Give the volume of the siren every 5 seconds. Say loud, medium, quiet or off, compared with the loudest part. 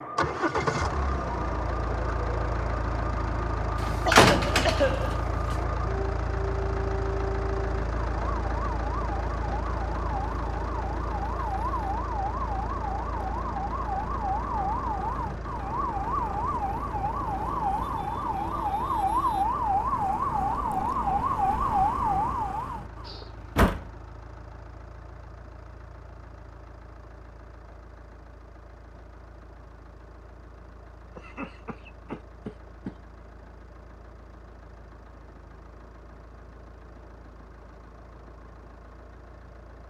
medium, medium, medium, loud, loud, off, off, off.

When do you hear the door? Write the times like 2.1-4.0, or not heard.
3.8-5.5, 23.4-23.9.